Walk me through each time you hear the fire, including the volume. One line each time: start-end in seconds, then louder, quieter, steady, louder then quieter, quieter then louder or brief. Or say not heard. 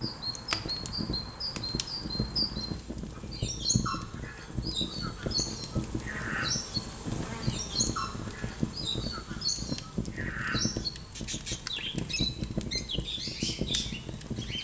0.0-14.5 steady.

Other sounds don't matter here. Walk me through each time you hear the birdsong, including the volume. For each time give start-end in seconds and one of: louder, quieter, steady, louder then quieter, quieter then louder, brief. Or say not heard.
0.0-14.5 steady.